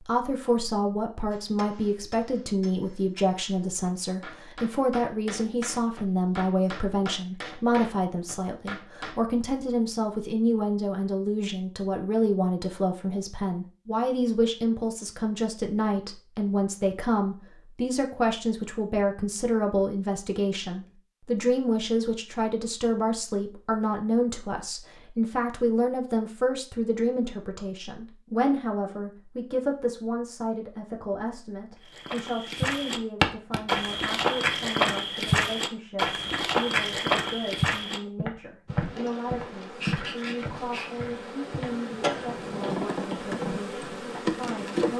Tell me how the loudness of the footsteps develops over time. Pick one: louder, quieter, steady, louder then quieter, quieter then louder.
quieter.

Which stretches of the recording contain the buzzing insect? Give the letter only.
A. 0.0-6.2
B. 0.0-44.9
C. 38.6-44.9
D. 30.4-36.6
C.